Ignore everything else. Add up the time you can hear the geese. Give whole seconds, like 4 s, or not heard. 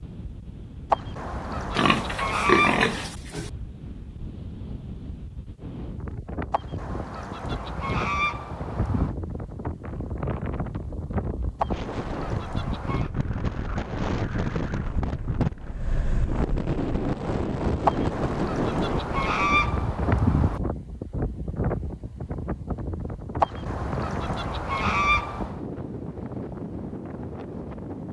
11 s.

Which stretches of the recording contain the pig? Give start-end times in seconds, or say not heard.
1.8-3.5.